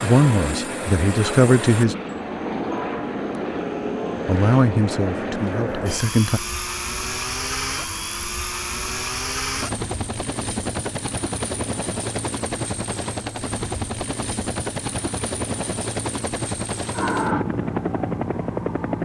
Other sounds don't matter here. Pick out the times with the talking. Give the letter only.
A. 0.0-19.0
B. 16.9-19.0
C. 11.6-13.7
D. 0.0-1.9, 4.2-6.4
D.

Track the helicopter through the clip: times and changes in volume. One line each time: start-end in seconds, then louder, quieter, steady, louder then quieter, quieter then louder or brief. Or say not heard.
0.0-19.0 steady.